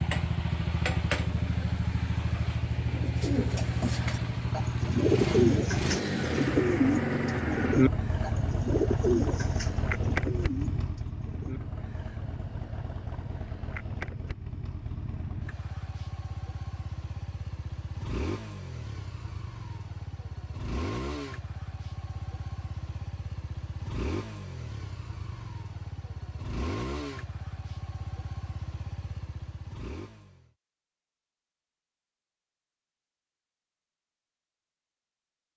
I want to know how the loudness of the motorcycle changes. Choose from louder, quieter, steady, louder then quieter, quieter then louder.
quieter.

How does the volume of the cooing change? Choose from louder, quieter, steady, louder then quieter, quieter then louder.
louder then quieter.